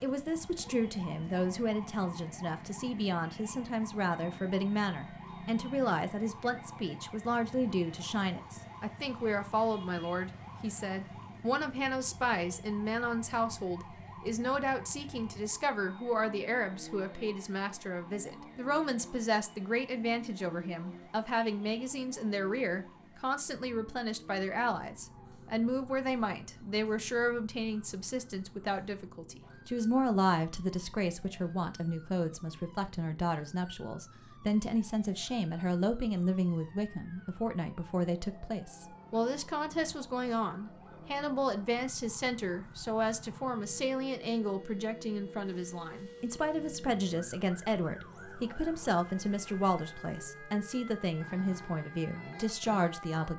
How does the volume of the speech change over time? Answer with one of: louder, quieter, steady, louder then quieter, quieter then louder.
steady.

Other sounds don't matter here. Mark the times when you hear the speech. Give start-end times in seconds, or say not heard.
0.0-53.3.